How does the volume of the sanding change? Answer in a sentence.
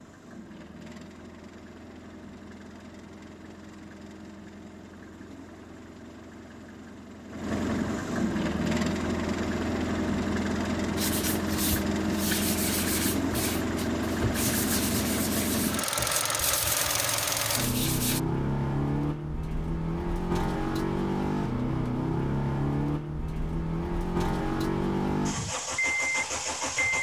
The loudness of the sanding stays about the same.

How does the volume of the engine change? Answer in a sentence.
The volume of the engine goes up.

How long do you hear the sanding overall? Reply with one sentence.
You can hear the sanding for 7 seconds altogether.